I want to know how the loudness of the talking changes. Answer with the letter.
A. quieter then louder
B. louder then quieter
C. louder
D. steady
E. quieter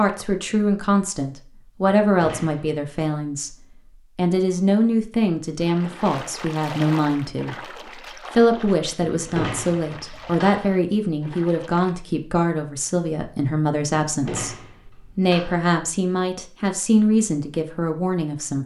D.